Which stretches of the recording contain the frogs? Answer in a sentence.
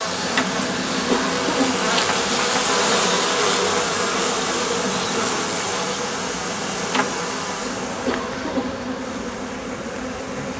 The frogs can't be heard in this clip.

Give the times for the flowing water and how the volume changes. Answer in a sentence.
The flowing water can be heard from 0.0 to 10.5 s, getting quieter.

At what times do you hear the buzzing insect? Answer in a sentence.
The buzzing insect can be heard from 0.0 to 10.5 s.